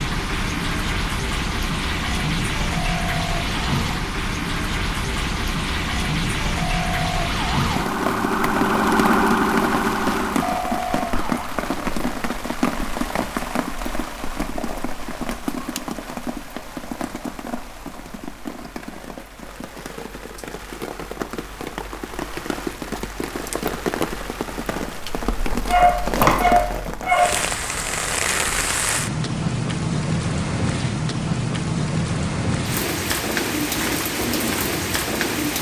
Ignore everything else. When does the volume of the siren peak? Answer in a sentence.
The volume of the siren peaks at 9 seconds.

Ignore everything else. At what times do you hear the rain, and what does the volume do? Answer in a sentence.
You can hear the rain from 0.0 to 35.5 s, getting quieter then louder.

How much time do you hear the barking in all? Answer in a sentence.
You can hear the barking for 2 seconds altogether.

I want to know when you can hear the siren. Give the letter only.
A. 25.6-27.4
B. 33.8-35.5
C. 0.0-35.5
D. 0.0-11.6
D.